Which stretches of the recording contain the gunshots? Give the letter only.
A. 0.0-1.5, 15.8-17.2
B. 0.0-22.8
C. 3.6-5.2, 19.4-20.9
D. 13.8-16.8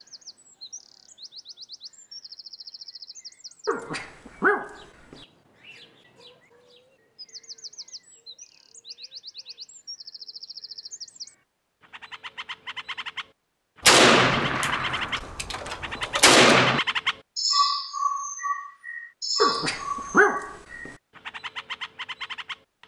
D.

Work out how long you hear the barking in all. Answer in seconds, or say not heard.
3 s.